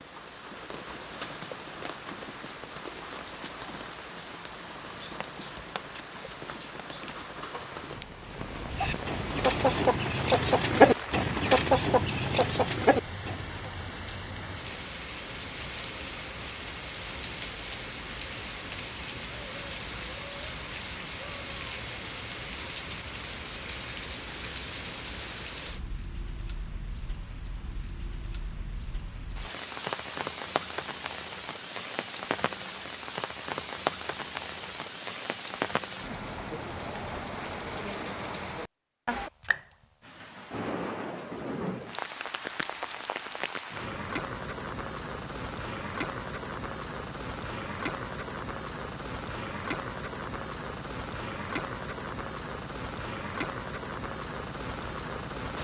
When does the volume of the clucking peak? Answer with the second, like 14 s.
11 s.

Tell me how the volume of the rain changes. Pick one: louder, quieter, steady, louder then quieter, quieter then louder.
steady.